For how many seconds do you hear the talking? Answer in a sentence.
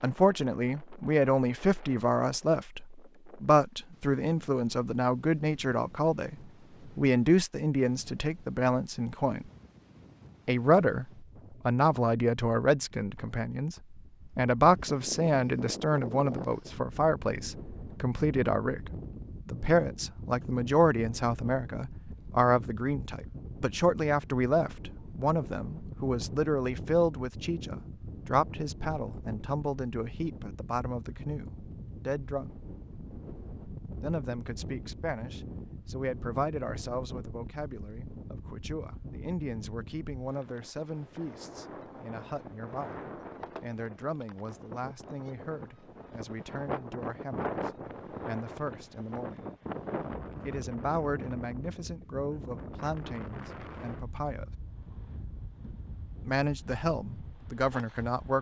You can hear the talking for 53 seconds altogether.